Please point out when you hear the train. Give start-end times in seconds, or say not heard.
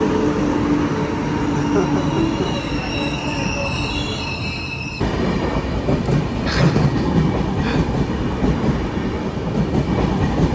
0.0-10.4.